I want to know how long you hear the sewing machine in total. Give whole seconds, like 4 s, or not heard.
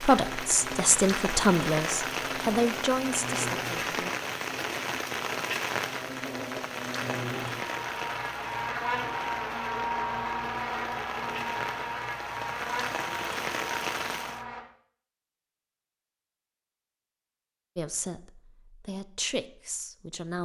not heard.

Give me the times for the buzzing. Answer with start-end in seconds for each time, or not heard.
0.1-14.7.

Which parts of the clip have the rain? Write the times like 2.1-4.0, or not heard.
0.0-14.4.